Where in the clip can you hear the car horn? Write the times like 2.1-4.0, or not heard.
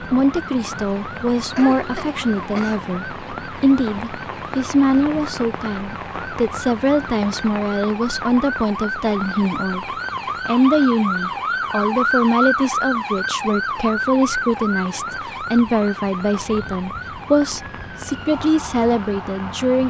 not heard.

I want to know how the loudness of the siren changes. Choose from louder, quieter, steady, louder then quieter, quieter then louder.
louder then quieter.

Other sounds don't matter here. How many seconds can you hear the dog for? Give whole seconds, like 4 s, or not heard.
not heard.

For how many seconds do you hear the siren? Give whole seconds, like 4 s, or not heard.
20 s.